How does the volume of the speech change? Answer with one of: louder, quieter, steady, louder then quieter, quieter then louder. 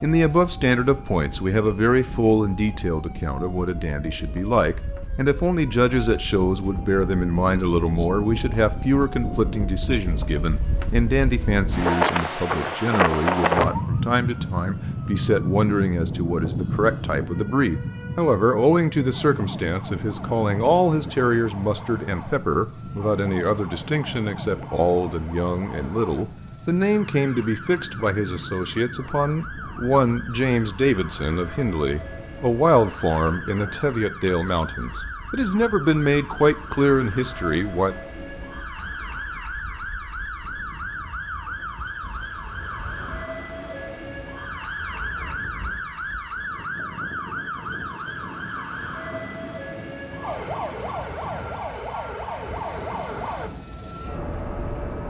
steady.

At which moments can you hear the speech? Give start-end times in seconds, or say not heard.
0.0-38.0.